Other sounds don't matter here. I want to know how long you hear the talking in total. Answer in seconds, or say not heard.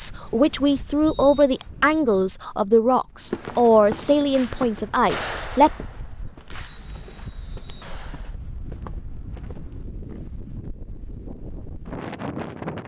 6 s.